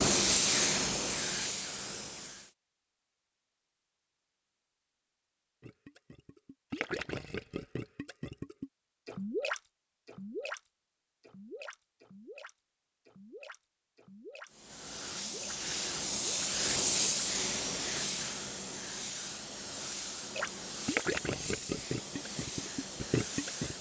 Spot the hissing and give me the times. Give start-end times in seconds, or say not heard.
0.0-2.5, 14.5-23.7.